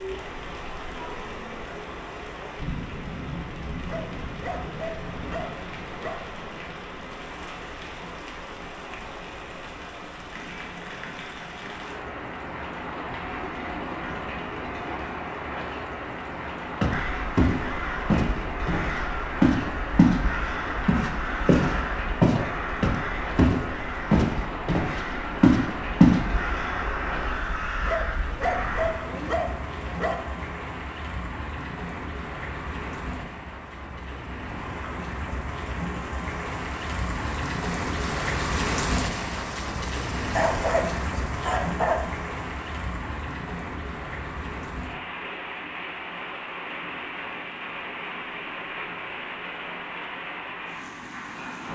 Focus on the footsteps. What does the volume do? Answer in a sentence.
The loudness of the footsteps goes up.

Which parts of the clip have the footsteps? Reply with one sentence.
The footsteps can be heard from 16.8 to 20.2 s and from 20.9 to 26.2 s.